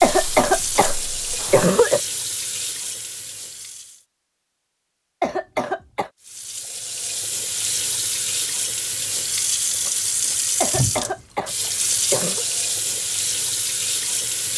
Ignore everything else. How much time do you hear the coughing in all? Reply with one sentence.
You can hear the coughing for 5 seconds altogether.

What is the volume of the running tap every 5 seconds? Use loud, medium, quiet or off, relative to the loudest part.
medium, loud, loud.